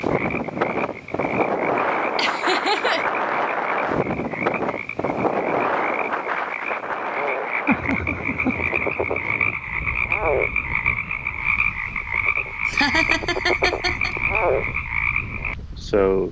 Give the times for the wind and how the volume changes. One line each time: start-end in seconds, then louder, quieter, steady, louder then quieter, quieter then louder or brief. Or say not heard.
0.0-16.2 quieter.